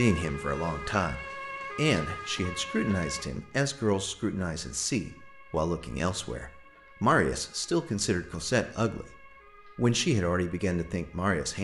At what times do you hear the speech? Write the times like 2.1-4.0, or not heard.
0.0-11.6.